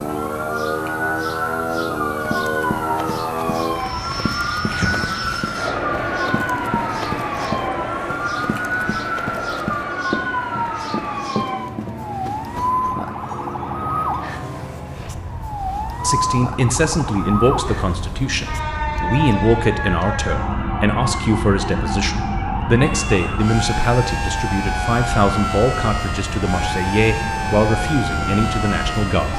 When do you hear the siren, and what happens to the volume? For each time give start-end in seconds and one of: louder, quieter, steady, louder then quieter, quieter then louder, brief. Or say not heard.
0.0-29.3 steady.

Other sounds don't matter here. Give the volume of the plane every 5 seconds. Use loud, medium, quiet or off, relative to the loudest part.
loud, loud, medium, medium, medium, medium.